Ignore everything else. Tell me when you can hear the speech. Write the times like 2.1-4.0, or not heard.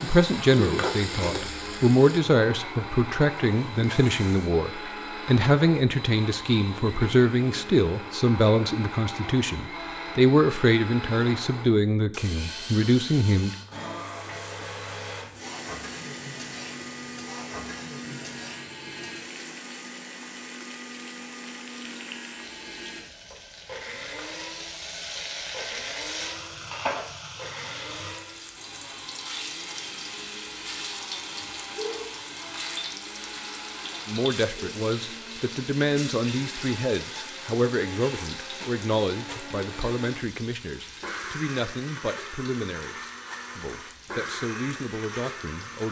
0.0-13.6, 34.0-45.8.